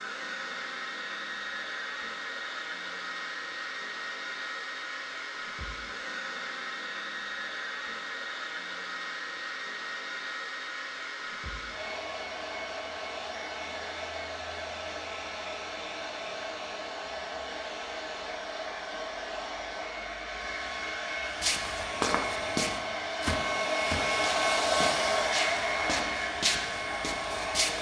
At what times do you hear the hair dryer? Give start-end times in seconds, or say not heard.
0.0-27.7.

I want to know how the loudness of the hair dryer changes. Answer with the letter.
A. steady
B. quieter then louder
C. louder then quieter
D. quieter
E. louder
E.